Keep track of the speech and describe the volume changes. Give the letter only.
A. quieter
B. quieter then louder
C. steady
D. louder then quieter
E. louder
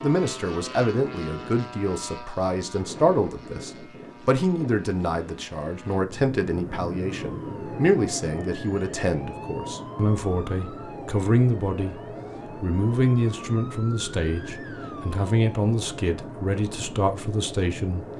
C.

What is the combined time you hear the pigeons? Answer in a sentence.
The pigeons can't be heard in this clip.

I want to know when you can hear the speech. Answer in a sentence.
You can hear the speech from 0.0 to 11.9 s and from 12.6 to 18.1 s.